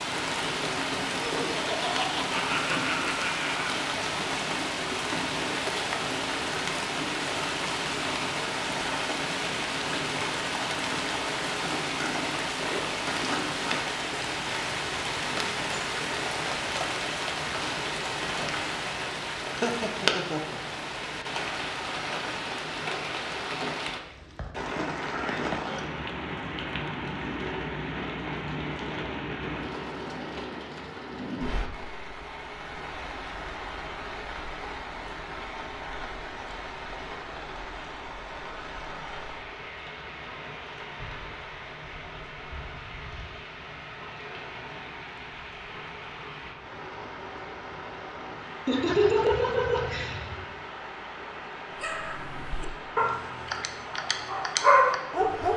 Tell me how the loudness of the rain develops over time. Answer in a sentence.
The loudness of the rain goes down.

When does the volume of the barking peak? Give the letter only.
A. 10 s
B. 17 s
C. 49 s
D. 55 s
D.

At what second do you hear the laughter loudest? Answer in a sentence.
The loudest moment of the laughter is at 49 seconds.